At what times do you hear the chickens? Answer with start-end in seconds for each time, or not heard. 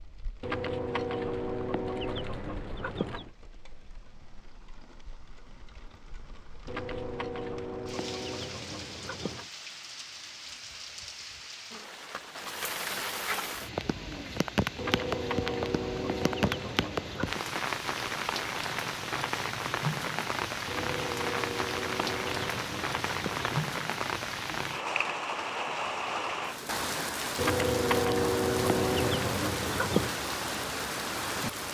0.4-3.3, 6.7-9.5, 14.8-17.4, 20.6-23.6, 27.4-30.1.